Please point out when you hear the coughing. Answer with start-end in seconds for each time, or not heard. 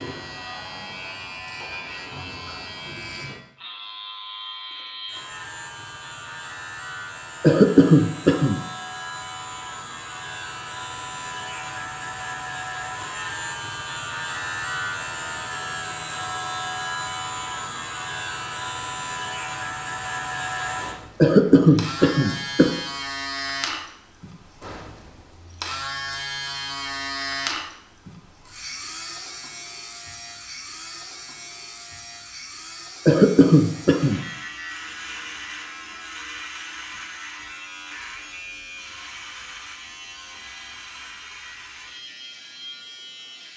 7.4-8.6, 21.2-22.8, 33.0-34.2.